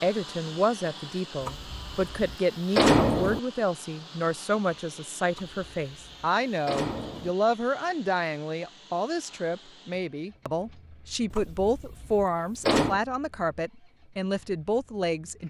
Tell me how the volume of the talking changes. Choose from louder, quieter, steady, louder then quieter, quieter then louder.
steady.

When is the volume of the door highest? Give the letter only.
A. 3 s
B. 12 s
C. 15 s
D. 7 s
A.